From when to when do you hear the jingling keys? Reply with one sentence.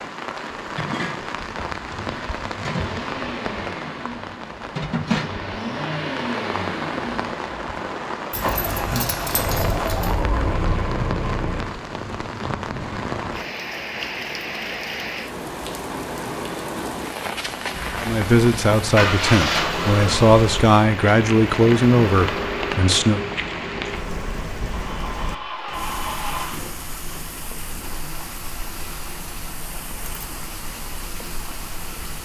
You can hear the jingling keys from 8.3 to 10.2 s.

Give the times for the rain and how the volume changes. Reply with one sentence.
The rain can be heard from 0.0 to 32.2 s, getting quieter.